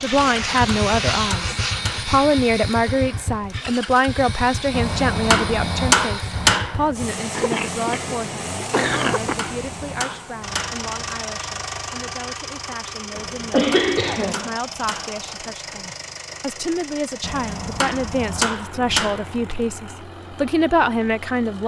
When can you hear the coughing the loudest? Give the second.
14 s.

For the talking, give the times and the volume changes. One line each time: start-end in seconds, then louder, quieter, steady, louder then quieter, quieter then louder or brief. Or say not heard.
0.0-21.6 quieter then louder.